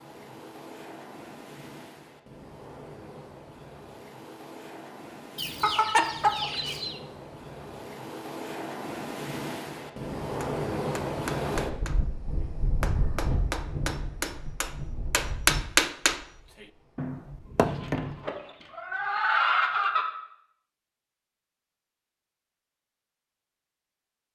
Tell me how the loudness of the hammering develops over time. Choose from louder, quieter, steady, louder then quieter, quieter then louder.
louder then quieter.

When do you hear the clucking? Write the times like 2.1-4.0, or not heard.
5.3-7.0, 17.6-20.1.